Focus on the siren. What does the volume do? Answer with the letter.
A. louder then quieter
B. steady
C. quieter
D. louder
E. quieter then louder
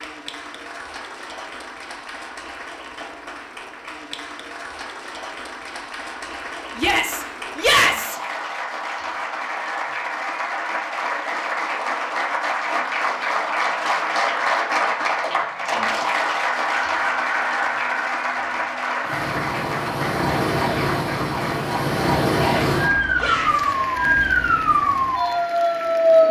D.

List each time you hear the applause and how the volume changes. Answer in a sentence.
You can hear the applause from 0.0 to 26.2 s, getting louder then quieter.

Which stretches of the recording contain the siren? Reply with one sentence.
You can hear the siren from 16.6 to 26.2 s.